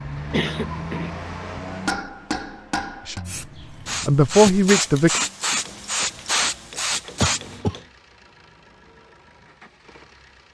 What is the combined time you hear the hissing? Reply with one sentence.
You can hear the hissing for 4 seconds altogether.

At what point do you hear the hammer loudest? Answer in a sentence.
The volume of the hammer peaks at 2 seconds.